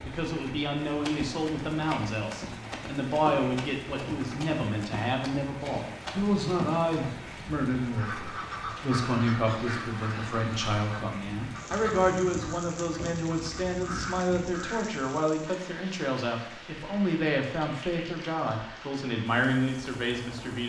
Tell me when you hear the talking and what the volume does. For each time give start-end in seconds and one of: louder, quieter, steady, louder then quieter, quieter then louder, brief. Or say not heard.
0.0-20.6 steady.